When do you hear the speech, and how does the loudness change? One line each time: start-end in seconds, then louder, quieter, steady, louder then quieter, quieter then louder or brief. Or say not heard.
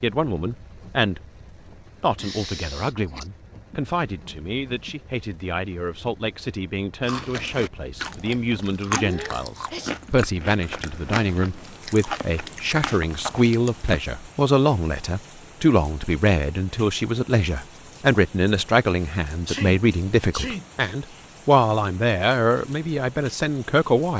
0.0-1.2 brief
2.0-24.1 louder.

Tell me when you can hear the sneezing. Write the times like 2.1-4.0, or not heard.
2.1-3.3, 8.9-9.9, 19.4-20.6.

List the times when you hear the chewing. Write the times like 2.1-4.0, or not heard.
7.0-14.0.